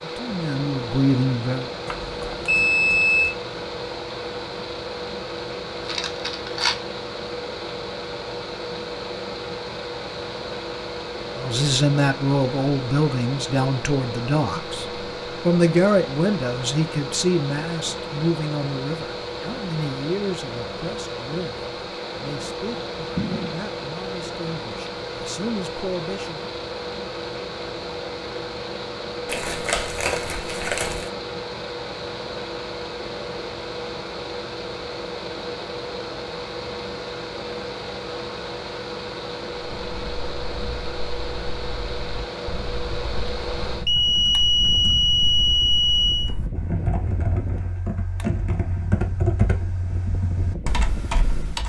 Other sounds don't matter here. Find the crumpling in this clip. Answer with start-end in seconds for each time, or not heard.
5.8-6.8, 29.2-31.1.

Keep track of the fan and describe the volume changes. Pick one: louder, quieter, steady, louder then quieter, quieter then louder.
steady.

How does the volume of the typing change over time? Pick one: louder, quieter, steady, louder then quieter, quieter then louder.
louder.